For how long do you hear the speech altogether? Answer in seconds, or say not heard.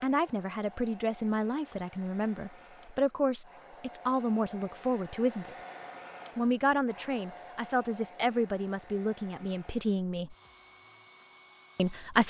10 s.